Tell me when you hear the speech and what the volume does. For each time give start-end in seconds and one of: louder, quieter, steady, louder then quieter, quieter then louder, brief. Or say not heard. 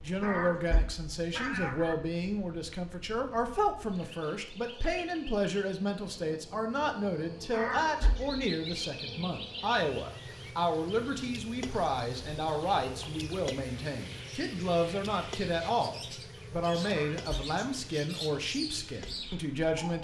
0.0-19.9 steady.